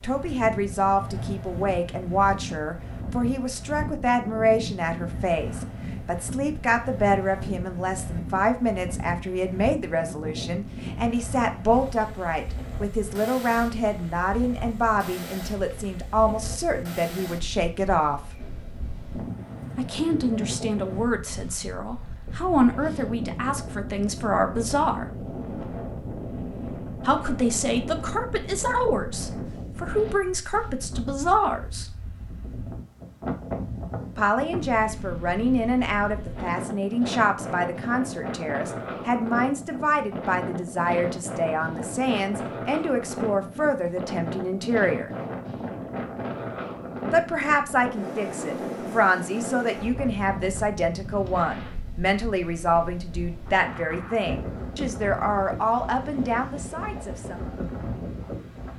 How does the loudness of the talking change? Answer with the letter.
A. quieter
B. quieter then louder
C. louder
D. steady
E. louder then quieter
D.